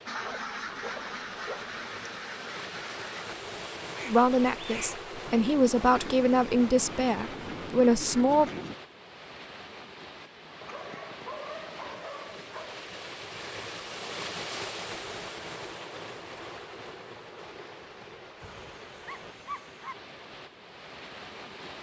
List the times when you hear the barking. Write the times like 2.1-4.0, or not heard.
0.2-1.8, 10.6-12.8, 18.4-19.9.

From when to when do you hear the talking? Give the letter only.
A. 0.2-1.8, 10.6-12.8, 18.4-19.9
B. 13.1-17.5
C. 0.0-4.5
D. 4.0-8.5
D.